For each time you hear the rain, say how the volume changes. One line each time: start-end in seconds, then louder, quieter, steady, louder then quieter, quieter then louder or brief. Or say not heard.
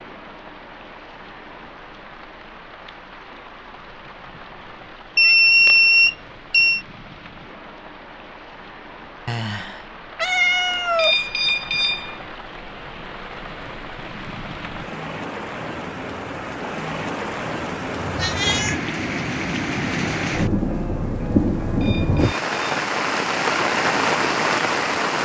0.0-25.2 louder.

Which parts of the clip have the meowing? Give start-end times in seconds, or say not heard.
5.2-5.8, 9.2-11.2, 17.9-18.8.